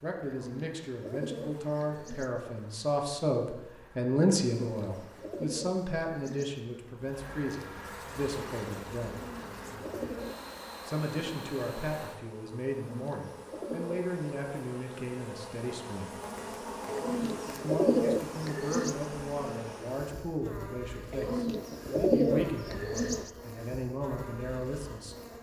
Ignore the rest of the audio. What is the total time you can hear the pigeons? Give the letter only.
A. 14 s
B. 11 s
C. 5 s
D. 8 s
B.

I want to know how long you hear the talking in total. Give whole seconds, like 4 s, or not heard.
22 s.